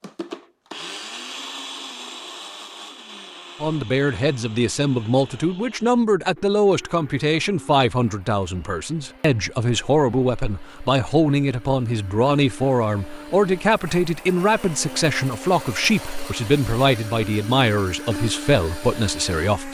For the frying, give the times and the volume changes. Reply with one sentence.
The frying can't be heard in this clip.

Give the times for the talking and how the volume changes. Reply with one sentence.
You can hear the talking from 3.6 to 19.6 s, at a steady volume.